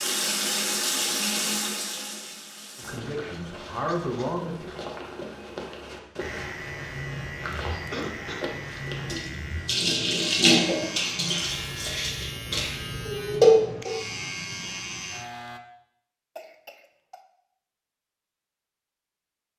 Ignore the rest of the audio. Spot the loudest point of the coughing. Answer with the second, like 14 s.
8 s.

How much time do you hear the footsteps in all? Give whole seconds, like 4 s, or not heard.
6 s.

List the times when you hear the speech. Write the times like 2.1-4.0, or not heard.
2.8-4.7.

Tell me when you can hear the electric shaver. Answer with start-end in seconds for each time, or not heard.
6.2-15.6.